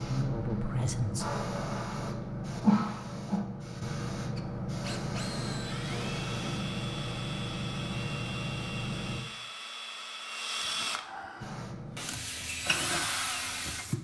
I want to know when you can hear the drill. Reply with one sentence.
The drill can be heard from 4.3 to 14.0 s.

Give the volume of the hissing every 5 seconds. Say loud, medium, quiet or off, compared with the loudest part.
loud, loud, medium.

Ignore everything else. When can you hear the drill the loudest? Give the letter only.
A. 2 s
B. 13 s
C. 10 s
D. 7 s
B.